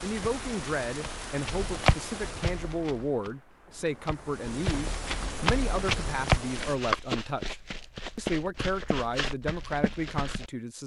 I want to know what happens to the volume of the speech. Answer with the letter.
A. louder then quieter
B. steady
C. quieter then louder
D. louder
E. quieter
B.